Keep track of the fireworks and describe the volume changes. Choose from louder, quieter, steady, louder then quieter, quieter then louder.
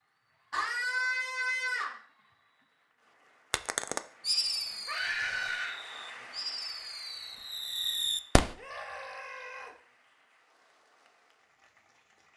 quieter then louder.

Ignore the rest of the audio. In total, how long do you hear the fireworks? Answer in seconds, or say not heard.
5 s.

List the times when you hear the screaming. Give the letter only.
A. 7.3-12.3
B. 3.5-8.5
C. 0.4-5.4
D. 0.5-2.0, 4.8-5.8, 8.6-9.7
D.